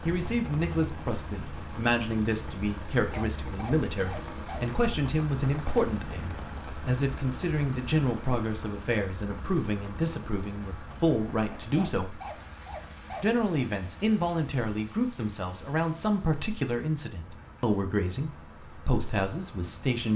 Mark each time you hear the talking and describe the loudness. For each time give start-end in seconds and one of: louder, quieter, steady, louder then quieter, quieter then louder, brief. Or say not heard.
0.1-12.2 steady
13.2-20.1 steady.